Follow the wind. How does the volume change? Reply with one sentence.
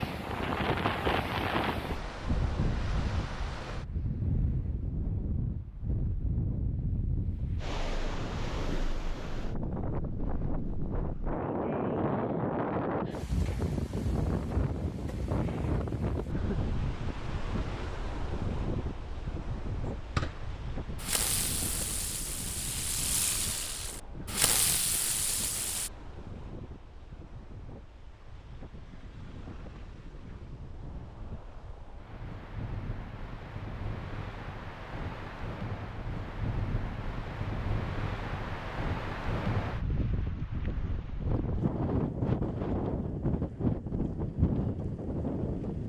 The volume of the wind goes down, then up.